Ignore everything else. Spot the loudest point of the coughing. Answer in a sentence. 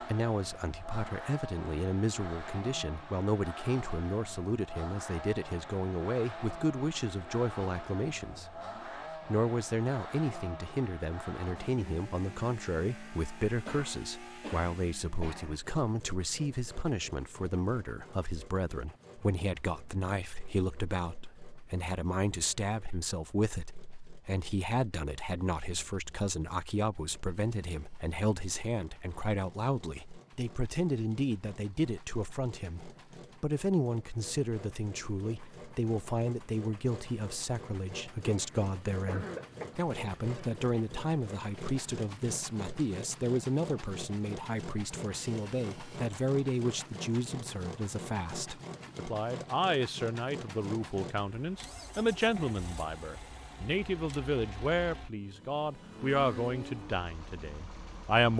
The volume of the coughing peaks at 39 seconds.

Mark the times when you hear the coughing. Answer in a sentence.
You can hear the coughing from 13.7 to 15.6 s and from 38.2 to 39.6 s.